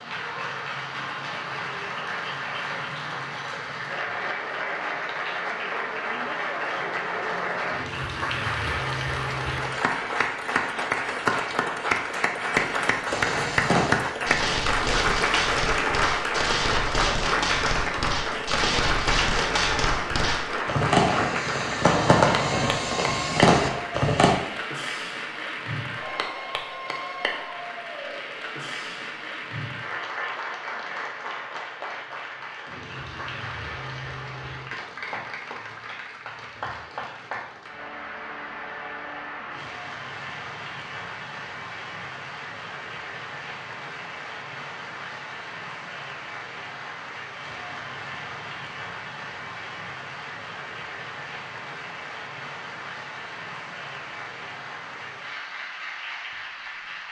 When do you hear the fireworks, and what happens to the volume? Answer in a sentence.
The fireworks can be heard from 13.1 to 24.4 s, getting louder.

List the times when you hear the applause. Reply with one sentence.
The applause can be heard from 0.0 to 57.0 s.